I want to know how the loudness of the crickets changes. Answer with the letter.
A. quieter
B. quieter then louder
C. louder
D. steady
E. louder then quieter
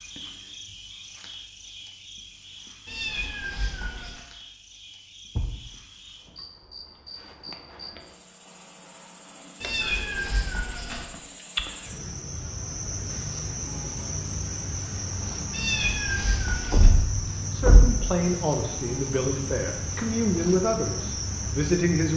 C.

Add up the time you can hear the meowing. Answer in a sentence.
The meowing can be heard for 4 seconds in total.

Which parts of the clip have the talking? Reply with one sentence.
The talking can be heard from 17.5 to 22.1 s.